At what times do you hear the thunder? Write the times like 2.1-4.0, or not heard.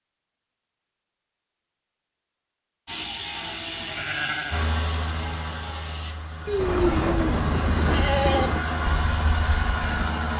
6.5-8.6.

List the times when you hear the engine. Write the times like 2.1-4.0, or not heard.
4.5-10.3.